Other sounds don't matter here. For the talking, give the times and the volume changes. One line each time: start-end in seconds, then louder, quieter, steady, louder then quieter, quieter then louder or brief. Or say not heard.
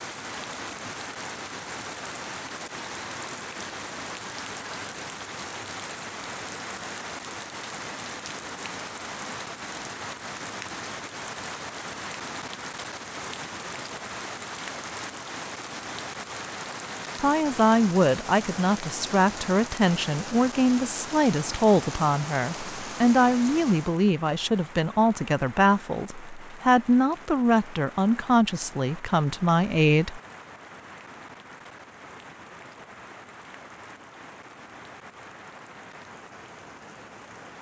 17.1-30.2 steady.